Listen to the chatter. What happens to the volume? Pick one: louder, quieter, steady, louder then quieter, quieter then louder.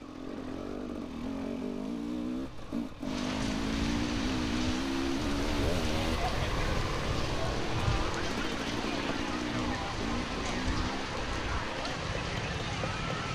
steady.